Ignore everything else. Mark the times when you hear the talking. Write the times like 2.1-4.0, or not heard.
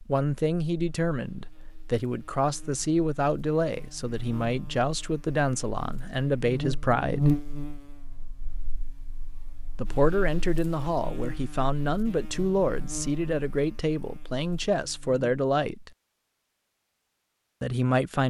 0.1-7.3, 9.8-15.9, 17.6-18.2.